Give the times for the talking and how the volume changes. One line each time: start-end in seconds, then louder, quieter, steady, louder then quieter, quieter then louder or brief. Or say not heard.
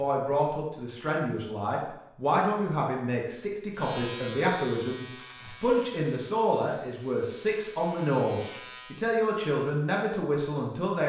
0.0-11.0 steady.